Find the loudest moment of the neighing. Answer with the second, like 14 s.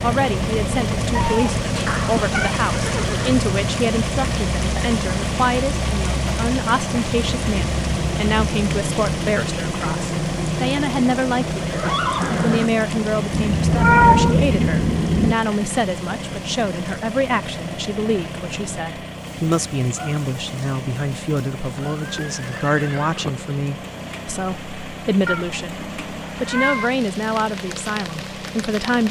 12 s.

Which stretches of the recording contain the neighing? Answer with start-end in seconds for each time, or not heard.
1.9-3.5, 11.7-12.7, 21.9-23.3.